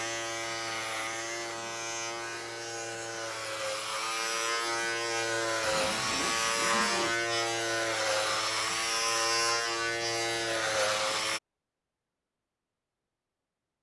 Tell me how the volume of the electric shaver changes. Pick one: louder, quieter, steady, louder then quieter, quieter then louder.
louder.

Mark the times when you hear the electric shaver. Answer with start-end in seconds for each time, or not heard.
0.0-11.4.